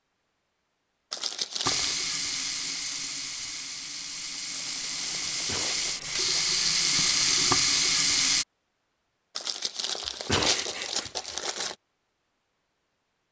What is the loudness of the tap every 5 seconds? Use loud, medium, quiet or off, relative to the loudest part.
medium, loud, off.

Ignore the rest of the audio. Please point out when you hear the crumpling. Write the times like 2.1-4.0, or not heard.
1.1-1.9, 4.5-6.3, 9.3-11.8.